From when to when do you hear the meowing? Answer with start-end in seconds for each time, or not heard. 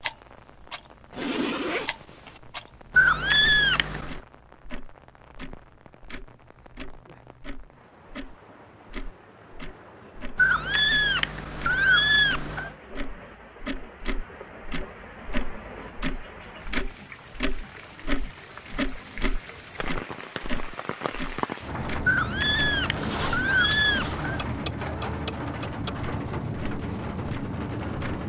3.0-4.2, 10.3-12.8, 22.1-24.5.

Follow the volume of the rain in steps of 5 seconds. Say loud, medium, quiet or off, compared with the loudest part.
quiet, quiet, quiet, medium, loud, loud.